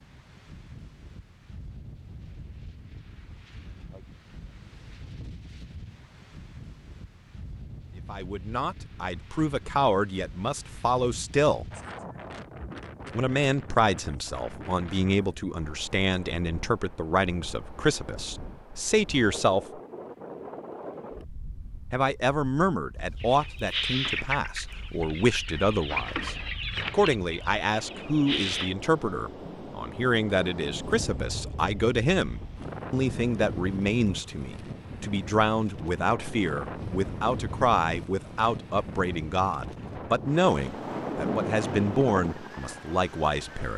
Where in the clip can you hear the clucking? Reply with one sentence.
The clucking can be heard from 23.2 to 28.7 s.